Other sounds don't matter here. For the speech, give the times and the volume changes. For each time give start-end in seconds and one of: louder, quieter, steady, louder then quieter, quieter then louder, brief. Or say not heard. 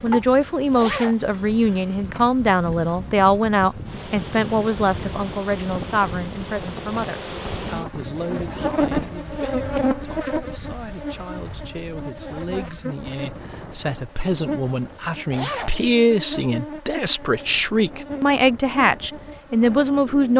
0.0-20.3 quieter then louder.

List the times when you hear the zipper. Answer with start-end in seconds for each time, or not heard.
0.7-1.2, 15.3-15.8.